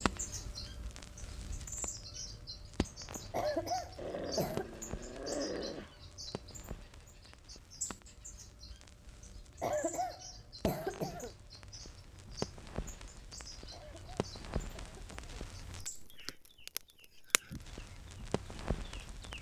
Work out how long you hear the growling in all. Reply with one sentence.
You can hear the growling for 2 seconds altogether.